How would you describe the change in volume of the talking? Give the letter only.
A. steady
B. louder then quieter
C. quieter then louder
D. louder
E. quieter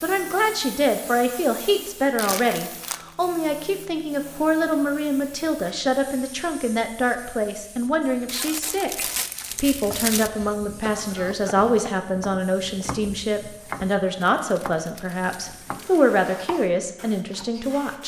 A.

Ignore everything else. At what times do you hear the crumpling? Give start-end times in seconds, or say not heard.
2.1-3.1, 8.2-10.3, 14.2-16.0.